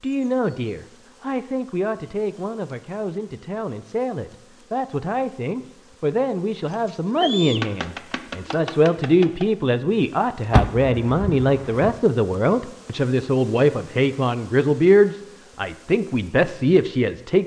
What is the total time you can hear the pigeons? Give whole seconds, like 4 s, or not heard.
3 s.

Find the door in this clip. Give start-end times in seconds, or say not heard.
10.5-11.9.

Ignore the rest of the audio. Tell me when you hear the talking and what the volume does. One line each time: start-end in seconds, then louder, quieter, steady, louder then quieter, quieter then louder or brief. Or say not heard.
0.0-17.4 louder.